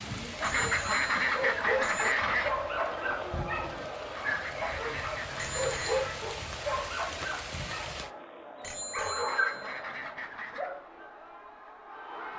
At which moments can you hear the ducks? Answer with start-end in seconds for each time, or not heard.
0.4-2.5, 4.2-6.2, 9.2-10.7.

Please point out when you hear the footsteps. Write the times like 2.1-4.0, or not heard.
not heard.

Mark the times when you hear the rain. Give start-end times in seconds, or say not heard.
0.0-8.1.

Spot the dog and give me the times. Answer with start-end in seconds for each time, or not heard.
0.3-10.8.